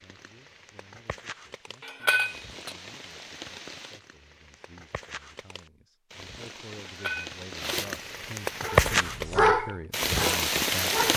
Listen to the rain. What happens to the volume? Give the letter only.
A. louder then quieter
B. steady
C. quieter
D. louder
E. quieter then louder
D.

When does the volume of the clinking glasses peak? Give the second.
2 s.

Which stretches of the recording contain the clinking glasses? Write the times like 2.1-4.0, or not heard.
1.8-2.8, 6.8-7.8.